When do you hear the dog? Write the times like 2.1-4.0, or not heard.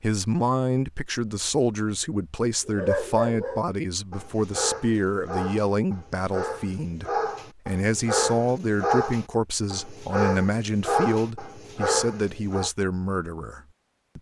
2.6-12.7.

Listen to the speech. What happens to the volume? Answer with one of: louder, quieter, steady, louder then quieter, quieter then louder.
steady.